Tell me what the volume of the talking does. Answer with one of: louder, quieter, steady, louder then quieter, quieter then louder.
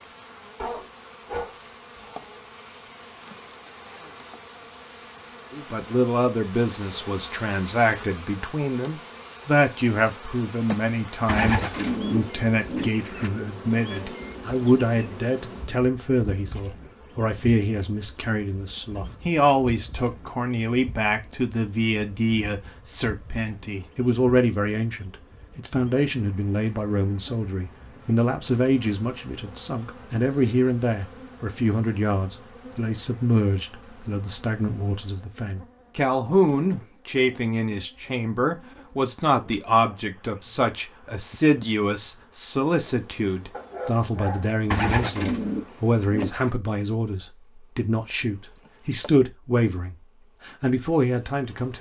steady.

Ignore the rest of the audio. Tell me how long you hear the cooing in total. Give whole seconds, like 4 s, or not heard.
4 s.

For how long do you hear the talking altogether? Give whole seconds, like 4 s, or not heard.
46 s.